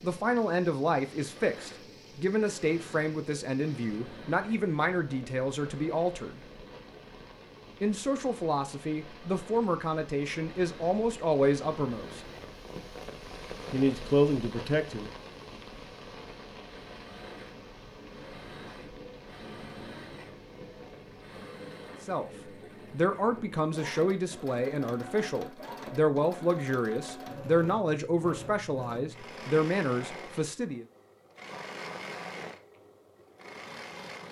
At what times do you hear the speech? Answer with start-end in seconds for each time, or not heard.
0.0-6.4, 7.8-12.2, 13.7-15.1, 22.1-30.9.